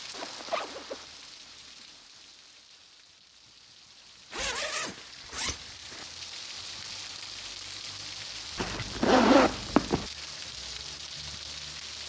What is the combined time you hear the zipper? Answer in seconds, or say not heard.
4 s.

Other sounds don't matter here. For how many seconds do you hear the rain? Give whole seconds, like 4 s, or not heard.
12 s.